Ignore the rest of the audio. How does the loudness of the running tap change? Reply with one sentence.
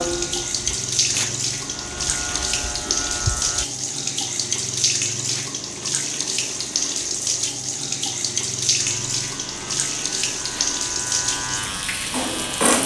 The loudness of the running tap stays about the same.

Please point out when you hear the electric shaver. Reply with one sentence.
You can hear the electric shaver from 0.0 to 3.6 s and from 8.8 to 12.8 s.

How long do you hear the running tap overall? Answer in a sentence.
The running tap can be heard for 13 seconds in total.